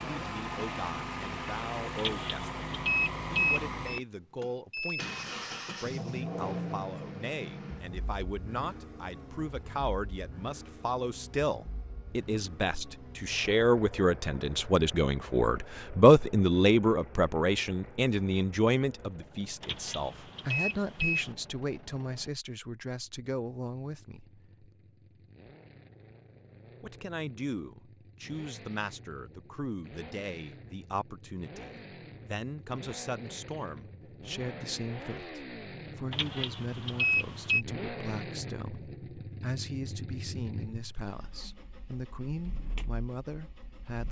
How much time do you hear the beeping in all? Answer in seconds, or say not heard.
5 s.